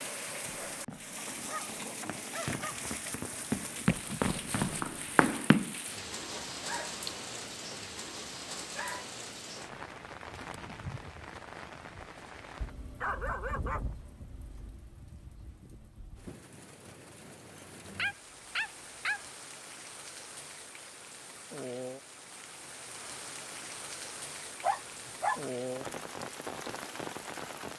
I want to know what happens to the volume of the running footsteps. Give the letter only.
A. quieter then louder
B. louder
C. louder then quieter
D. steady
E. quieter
B.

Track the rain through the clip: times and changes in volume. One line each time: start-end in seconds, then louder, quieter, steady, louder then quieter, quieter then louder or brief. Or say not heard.
0.0-27.7 quieter then louder.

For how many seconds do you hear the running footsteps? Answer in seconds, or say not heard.
5 s.